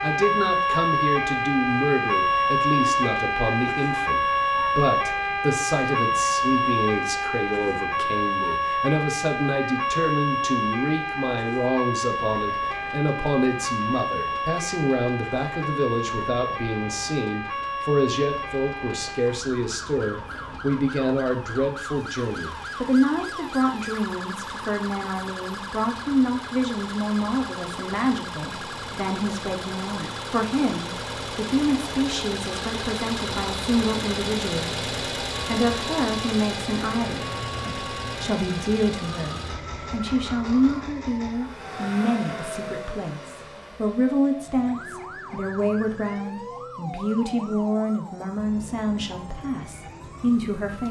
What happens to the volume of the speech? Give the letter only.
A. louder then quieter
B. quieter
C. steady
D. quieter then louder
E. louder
C.